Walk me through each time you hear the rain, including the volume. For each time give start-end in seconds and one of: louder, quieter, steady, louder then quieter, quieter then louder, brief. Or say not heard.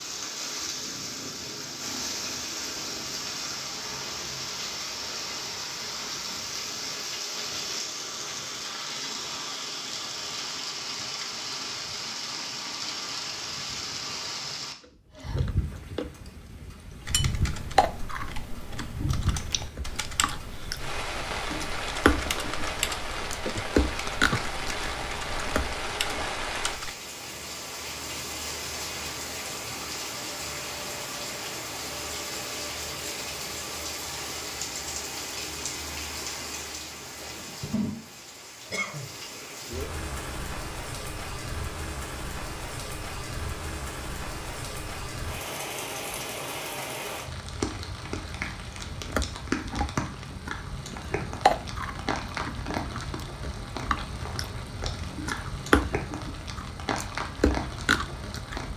0.0-58.7 steady.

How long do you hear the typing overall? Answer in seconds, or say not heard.
10 s.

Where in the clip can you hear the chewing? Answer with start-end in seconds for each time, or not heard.
14.8-26.2, 48.2-58.7.